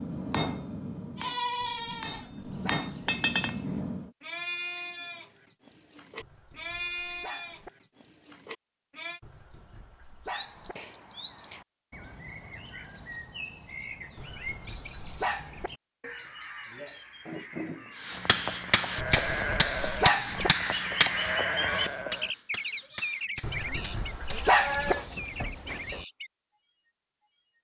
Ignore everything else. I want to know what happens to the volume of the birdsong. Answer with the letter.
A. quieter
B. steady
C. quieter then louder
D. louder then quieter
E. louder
D.